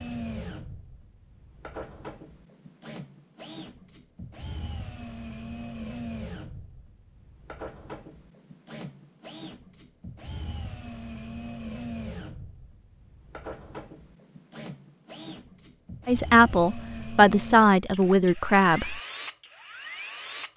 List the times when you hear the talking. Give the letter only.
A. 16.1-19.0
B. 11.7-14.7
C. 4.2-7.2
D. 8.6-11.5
A.